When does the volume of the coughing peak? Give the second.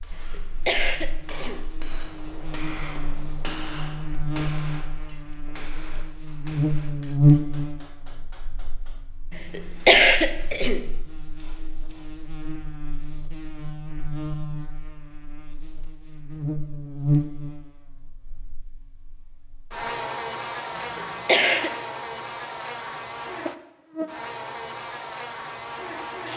10 s.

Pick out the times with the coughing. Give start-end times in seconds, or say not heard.
0.3-1.6, 9.6-10.8, 20.8-21.7.